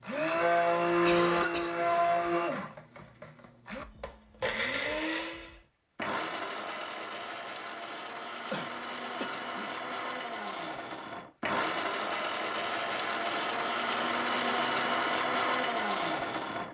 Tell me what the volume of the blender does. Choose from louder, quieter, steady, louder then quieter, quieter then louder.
quieter then louder.